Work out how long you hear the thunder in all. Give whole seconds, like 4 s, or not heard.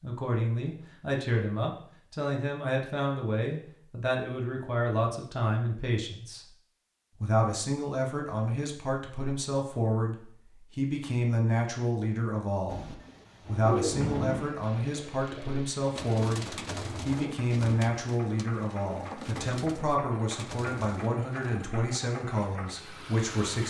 2 s.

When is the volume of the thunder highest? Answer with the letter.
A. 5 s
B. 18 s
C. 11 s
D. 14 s
D.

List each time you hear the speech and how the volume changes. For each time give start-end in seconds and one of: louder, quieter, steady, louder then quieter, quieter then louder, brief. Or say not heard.
0.0-6.5 steady
7.2-23.6 steady.